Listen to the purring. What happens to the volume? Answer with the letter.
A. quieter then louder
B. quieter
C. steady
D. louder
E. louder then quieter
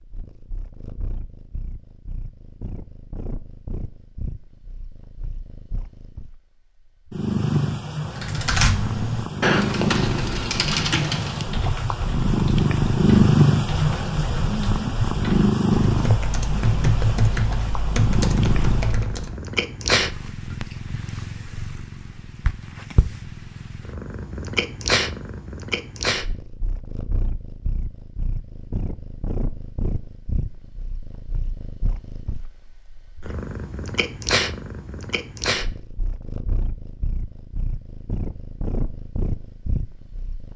E.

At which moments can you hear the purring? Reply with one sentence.
You can hear the purring from 0.0 to 40.5 s.